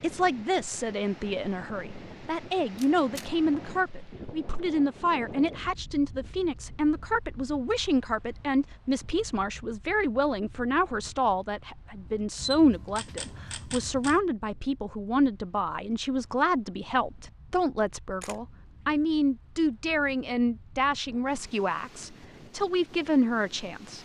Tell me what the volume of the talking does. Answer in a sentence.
The loudness of the talking stays about the same.